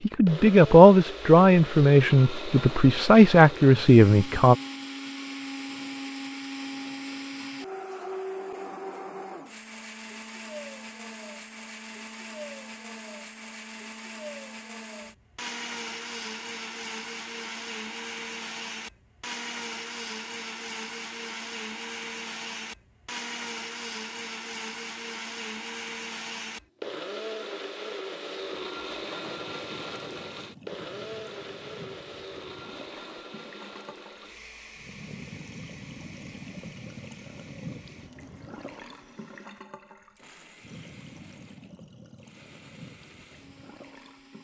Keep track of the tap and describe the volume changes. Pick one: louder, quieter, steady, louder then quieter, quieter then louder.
louder then quieter.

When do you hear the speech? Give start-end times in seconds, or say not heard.
0.1-4.5.